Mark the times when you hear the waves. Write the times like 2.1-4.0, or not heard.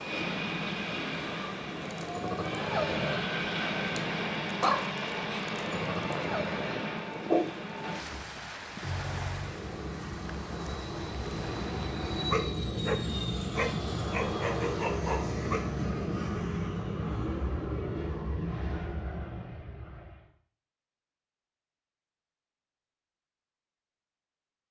0.0-12.4.